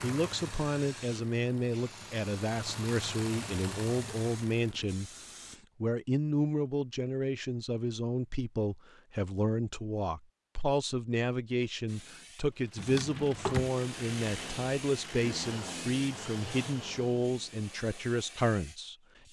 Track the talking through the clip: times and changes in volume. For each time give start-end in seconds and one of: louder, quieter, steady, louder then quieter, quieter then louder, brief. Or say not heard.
0.0-18.9 steady.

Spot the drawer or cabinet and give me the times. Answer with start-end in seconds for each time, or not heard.
12.8-13.7.